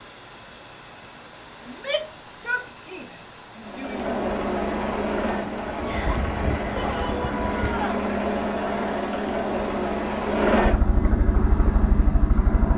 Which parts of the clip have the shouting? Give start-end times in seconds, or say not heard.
1.6-4.2, 6.8-8.0.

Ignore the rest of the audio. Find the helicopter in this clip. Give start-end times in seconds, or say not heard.
3.6-12.7.